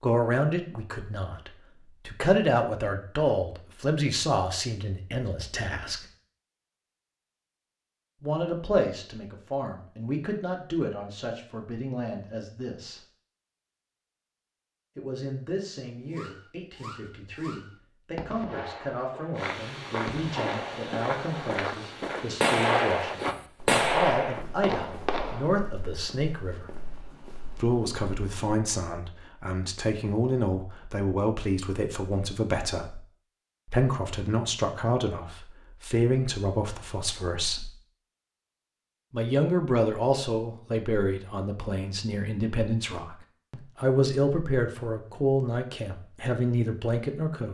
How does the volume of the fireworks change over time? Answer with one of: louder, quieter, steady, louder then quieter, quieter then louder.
louder.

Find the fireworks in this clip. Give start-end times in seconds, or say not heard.
16.1-25.6.